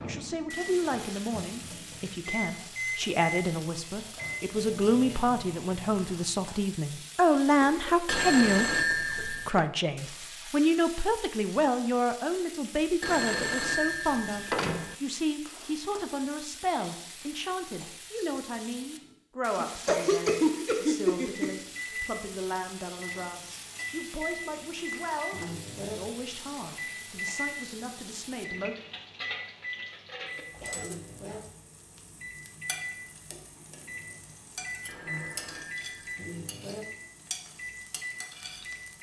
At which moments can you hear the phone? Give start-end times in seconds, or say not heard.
8.1-9.7, 13.0-14.9, 34.9-36.3.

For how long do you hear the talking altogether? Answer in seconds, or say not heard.
29 s.